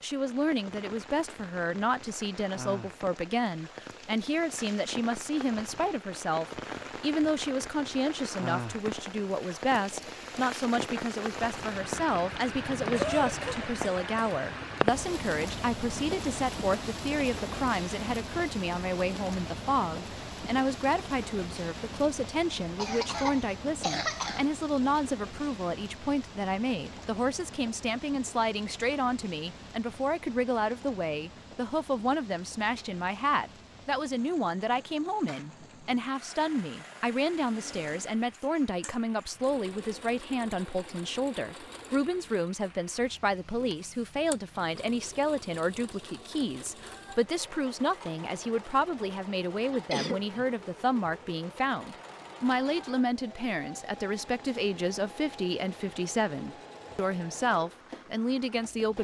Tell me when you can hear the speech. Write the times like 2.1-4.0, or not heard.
0.0-58.9.